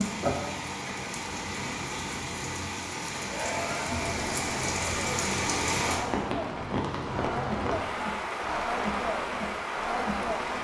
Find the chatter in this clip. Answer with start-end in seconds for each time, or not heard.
3.2-10.5.